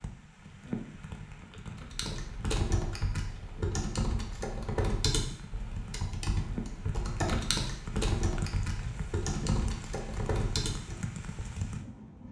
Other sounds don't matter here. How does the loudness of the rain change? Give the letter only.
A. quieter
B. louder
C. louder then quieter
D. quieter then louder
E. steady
D.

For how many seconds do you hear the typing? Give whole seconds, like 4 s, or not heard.
9 s.